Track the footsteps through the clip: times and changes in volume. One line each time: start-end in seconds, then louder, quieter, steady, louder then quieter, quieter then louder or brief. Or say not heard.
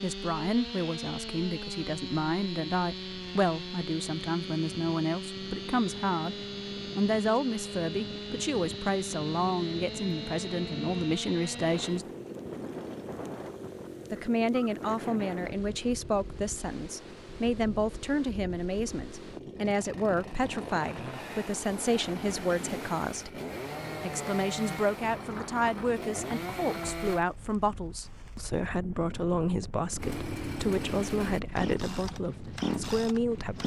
not heard.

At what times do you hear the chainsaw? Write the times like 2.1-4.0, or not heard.
0.0-27.2, 29.9-33.6.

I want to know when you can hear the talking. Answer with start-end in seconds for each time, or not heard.
0.0-6.3, 7.0-12.1, 14.1-23.3, 24.0-33.6.